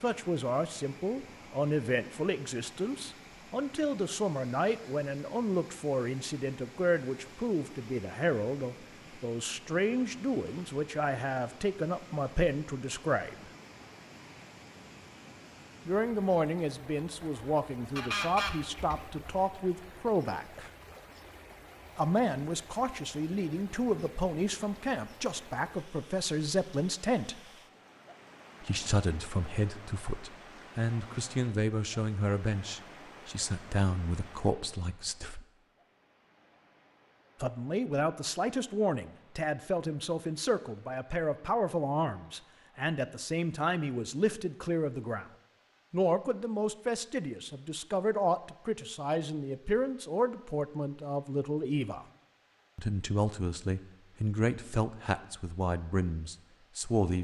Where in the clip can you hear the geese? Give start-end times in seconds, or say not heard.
17.9-19.4.